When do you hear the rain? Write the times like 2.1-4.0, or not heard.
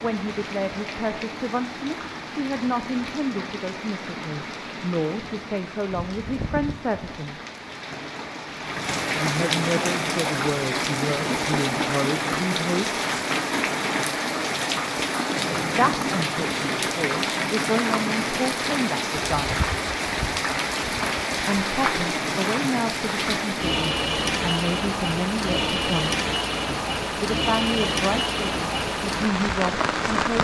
0.0-30.3.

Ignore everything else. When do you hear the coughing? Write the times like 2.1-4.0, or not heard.
not heard.